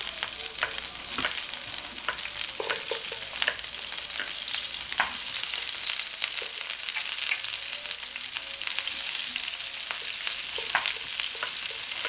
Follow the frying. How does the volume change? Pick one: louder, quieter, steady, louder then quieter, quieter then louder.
steady.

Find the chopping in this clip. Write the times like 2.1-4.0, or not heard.
0.6-5.8, 10.5-12.0.